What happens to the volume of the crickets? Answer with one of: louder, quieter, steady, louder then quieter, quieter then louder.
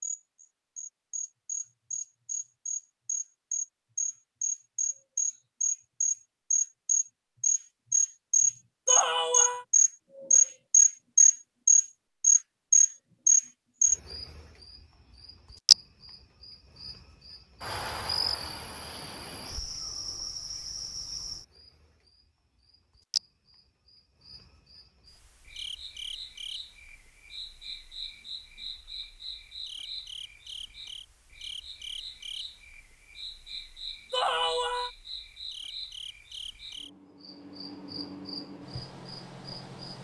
louder then quieter.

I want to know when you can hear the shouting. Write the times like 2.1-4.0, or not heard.
8.8-9.7, 34.1-34.9.